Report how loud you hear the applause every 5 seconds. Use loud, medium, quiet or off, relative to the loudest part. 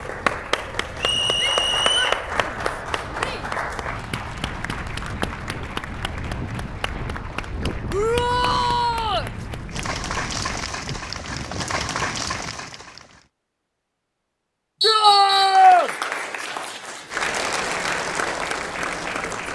loud, medium, loud, loud.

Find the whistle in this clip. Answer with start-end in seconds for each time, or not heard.
1.0-2.2, 14.8-15.7.